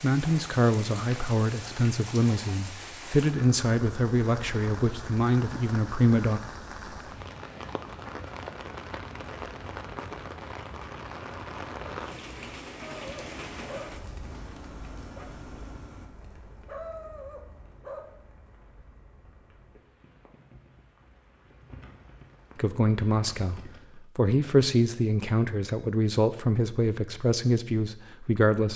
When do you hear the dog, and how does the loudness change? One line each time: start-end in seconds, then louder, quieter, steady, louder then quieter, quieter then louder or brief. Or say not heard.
12.8-18.1 quieter then louder.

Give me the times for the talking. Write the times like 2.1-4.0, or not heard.
0.0-6.4, 22.6-28.7.